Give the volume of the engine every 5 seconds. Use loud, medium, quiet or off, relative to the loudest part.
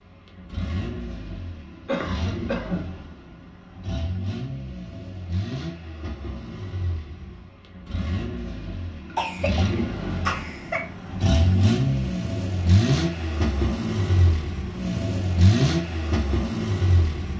medium, medium, loud, loud.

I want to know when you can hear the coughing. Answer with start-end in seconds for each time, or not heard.
1.9-2.8, 9.2-10.8.